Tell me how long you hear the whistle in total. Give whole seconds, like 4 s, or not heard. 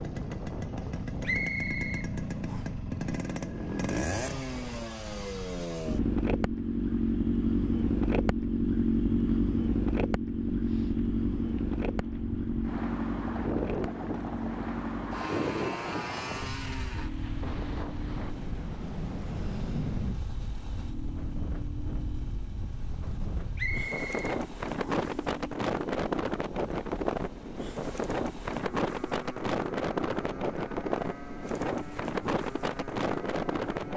3 s.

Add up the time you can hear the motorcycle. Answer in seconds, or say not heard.
34 s.